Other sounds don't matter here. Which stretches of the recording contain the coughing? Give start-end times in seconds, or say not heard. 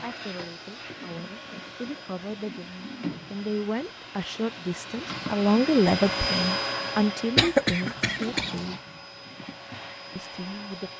7.3-8.6.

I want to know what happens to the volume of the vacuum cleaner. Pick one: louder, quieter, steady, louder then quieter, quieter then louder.
louder then quieter.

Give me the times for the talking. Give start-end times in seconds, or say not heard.
0.0-8.8, 10.2-10.9.